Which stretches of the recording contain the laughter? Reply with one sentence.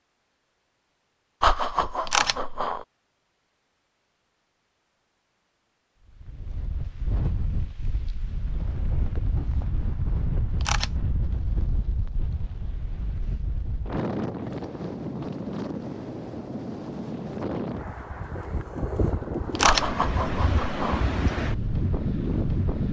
The laughter can be heard from 1.4 to 2.9 s and from 19.6 to 21.1 s.